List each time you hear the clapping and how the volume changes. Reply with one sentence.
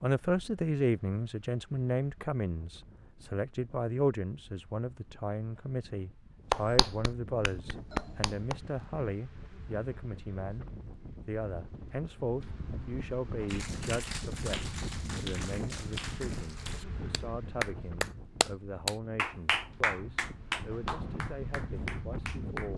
You can hear the clapping briefly from 6.5 to 8.6 s; and from 13.4 to 22.7 s, getting louder then quieter.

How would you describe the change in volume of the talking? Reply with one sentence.
The loudness of the talking goes down.